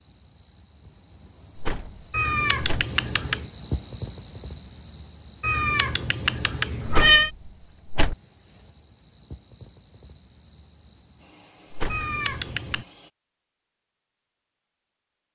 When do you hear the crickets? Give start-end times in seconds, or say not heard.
0.0-13.1.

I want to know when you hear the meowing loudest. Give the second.
7 s.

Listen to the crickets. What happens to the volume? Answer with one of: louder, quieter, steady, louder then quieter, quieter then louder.
louder then quieter.